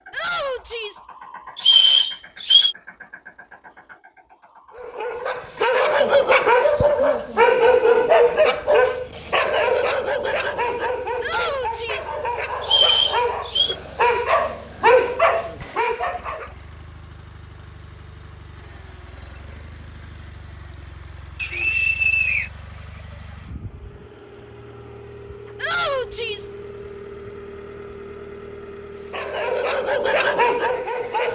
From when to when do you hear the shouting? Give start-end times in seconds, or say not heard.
0.1-1.1, 11.2-12.2, 25.6-26.6.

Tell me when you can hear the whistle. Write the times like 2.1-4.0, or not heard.
1.6-2.8, 12.6-13.8, 21.4-22.5.